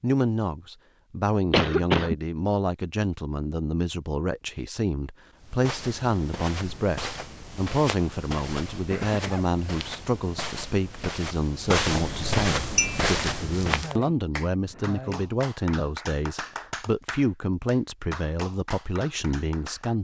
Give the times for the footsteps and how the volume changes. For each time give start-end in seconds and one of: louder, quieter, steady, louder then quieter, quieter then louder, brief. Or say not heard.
5.4-13.9 louder.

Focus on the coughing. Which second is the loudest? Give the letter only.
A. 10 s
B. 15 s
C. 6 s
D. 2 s
D.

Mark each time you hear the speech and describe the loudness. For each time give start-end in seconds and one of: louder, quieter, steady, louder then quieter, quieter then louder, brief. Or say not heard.
0.0-19.9 steady.